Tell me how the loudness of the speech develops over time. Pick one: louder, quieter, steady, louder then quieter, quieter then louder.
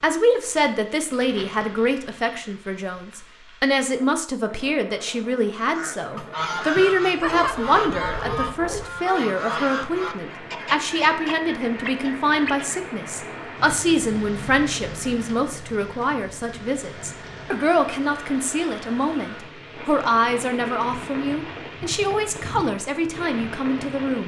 steady.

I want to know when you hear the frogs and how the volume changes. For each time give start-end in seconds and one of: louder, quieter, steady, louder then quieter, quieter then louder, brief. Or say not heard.
not heard.